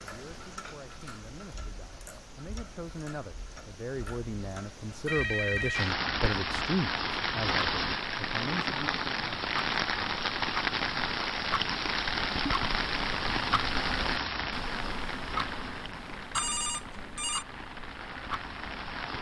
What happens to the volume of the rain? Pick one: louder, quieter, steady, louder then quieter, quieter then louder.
quieter.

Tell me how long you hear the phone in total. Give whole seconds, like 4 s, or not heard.
2 s.